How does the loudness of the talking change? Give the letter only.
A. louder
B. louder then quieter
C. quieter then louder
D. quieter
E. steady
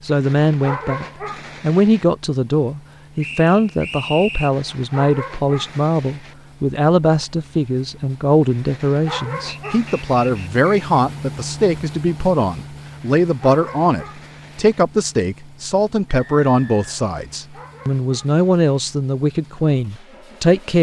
E.